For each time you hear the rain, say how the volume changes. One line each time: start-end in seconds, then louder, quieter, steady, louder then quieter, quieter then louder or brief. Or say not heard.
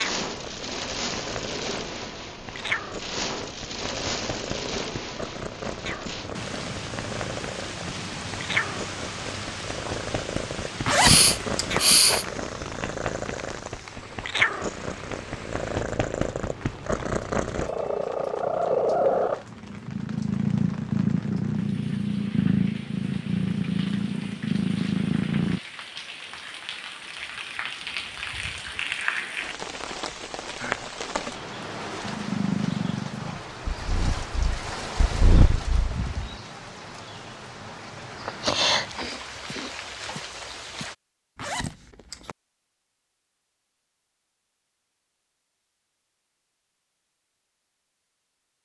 0.0-41.0 quieter then louder.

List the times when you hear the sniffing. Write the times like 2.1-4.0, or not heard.
10.9-12.2, 38.9-39.8.